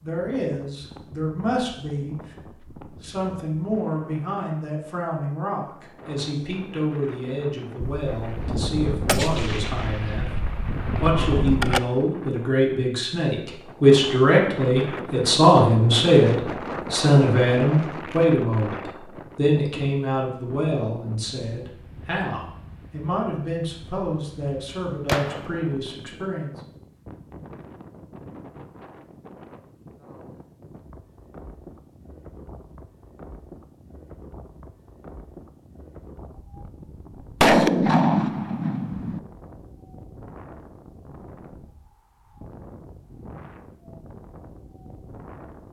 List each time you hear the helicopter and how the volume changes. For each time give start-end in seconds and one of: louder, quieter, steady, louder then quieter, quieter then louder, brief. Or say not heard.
not heard.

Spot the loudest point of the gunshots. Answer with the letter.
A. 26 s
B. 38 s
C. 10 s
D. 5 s
B.